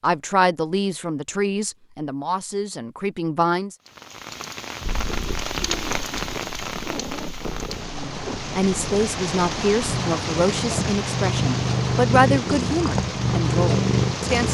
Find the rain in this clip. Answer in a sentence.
The rain can be heard from 3.9 to 14.4 s.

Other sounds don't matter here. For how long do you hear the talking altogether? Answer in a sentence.
The talking can be heard for 10 seconds in total.